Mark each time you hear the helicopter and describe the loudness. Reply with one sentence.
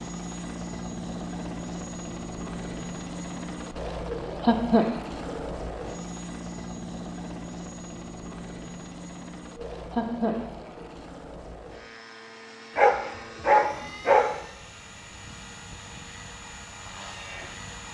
The helicopter can be heard from 0.0 to 17.8 s, getting quieter.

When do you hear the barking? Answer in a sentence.
The barking can be heard from 12.8 to 14.4 s.